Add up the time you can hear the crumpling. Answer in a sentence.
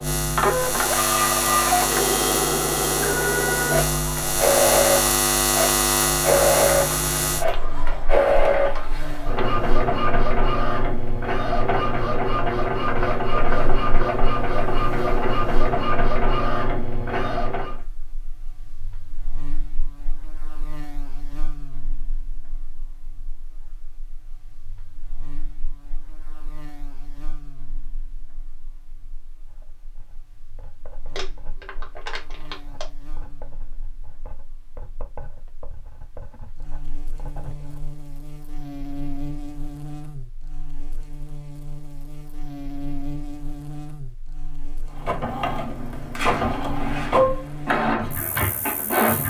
The crumpling can be heard for 2 seconds in total.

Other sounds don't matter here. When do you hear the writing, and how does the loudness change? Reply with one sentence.
The writing can be heard from 29.4 to 37.9 s, getting louder.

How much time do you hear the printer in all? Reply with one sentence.
You can hear the printer for 22 seconds altogether.